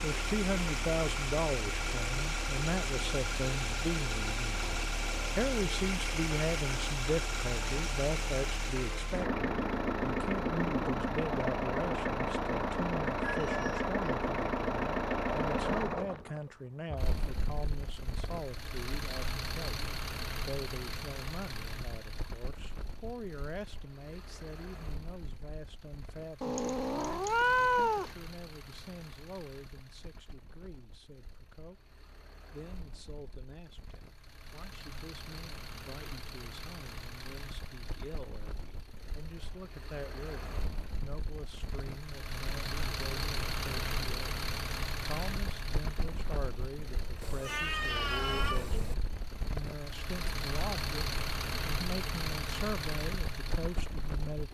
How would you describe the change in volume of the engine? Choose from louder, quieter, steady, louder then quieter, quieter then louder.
quieter then louder.